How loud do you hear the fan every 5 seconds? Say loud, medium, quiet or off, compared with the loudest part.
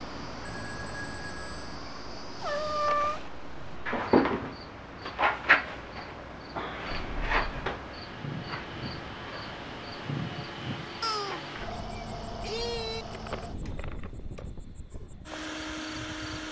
medium, medium, loud, loud.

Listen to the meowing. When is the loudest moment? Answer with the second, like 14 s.
3 s.